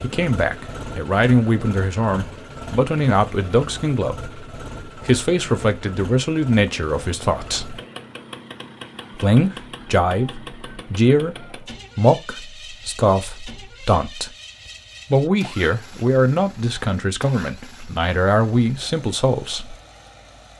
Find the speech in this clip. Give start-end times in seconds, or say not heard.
0.0-4.3, 5.0-7.8, 9.2-14.3, 15.1-19.8.